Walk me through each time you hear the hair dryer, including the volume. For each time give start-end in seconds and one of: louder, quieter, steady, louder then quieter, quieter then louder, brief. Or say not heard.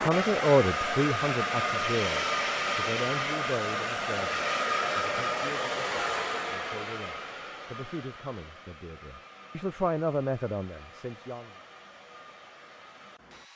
0.0-13.5 quieter.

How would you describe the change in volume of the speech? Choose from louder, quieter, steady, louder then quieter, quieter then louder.
quieter then louder.